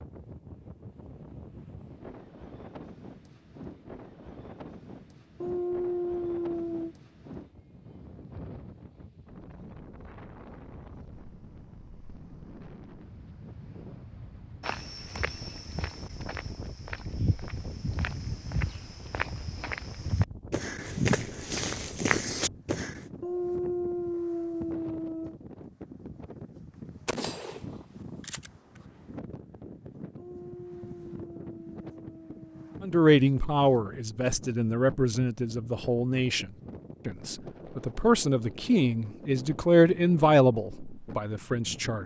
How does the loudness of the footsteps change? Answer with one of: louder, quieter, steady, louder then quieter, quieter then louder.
louder.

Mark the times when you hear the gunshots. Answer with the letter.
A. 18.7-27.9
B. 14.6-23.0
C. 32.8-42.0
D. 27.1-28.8
D.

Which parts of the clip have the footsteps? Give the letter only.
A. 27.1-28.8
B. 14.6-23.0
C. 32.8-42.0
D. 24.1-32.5
B.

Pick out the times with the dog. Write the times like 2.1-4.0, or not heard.
5.4-7.0, 23.2-25.4, 30.1-32.9.